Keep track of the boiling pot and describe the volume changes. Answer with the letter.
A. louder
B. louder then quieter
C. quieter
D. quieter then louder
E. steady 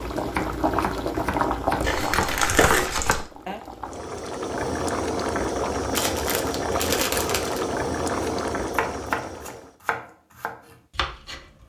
D.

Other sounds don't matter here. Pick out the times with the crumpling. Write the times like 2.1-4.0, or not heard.
1.8-3.3, 6.0-7.7.